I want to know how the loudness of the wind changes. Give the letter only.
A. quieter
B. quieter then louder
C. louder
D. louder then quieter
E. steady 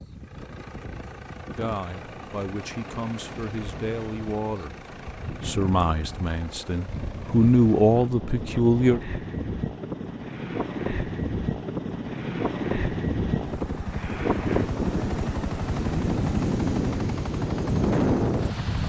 C.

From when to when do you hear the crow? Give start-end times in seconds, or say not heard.
not heard.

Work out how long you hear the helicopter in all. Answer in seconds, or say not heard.
19 s.